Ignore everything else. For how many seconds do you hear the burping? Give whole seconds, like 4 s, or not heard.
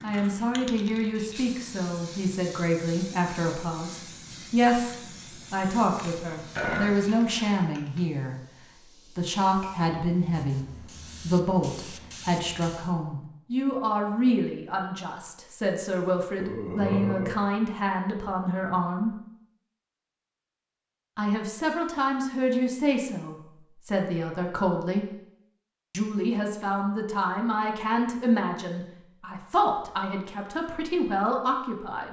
2 s.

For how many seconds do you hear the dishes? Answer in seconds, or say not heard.
not heard.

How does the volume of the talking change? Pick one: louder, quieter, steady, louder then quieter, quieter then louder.
steady.